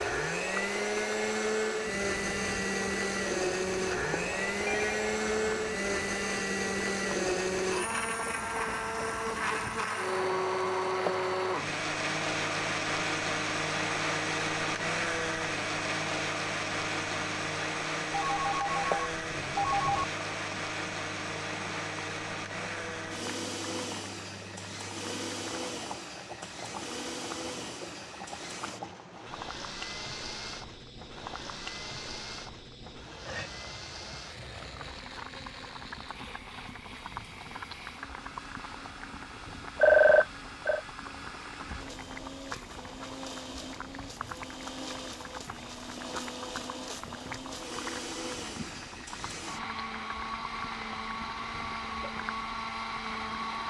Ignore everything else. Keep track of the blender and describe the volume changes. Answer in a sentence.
The volume of the blender goes down, then up.